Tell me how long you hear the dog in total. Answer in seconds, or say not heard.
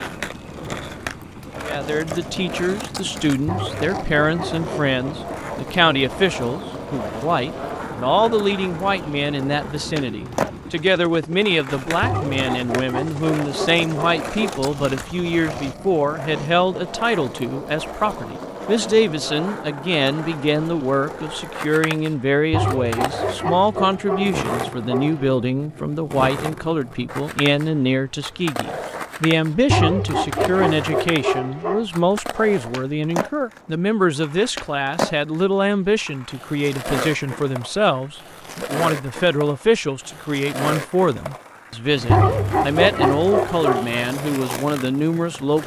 11 s.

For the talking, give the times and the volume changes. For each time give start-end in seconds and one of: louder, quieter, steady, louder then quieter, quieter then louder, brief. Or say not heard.
1.6-45.6 steady.